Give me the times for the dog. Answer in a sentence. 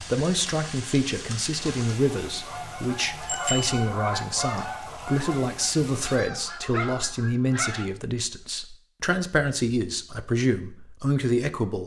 You can hear the dog from 6.4 to 7.9 s.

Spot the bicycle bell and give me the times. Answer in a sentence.
The bicycle bell can be heard from 3.2 to 3.9 s.